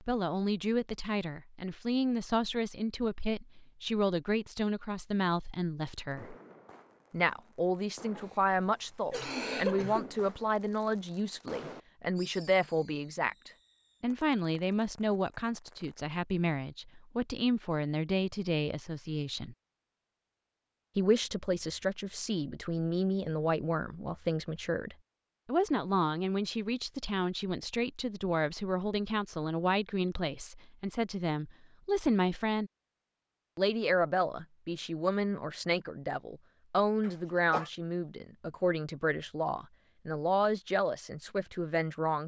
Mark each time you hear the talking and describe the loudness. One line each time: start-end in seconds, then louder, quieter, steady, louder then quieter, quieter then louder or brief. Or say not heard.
0.0-6.3 steady
7.1-19.6 steady
20.9-32.7 steady
33.5-42.2 steady.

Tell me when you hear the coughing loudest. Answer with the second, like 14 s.
10 s.